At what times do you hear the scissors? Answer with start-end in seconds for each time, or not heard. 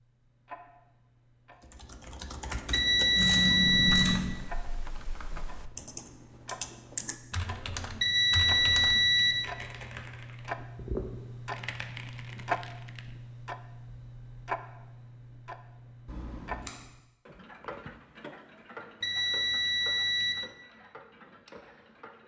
3.1-4.3, 16.1-16.7.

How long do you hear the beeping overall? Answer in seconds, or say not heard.
4 s.